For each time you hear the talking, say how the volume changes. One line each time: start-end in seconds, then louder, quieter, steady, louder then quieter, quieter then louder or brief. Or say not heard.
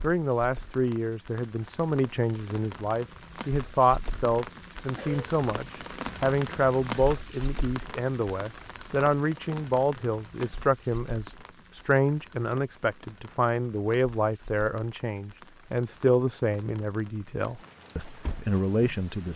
0.0-19.3 steady.